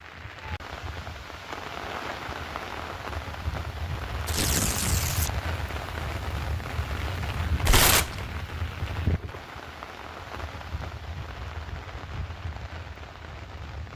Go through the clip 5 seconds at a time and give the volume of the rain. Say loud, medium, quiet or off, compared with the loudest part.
loud, loud, medium.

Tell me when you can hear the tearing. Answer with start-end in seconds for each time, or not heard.
4.2-5.3, 7.7-8.2.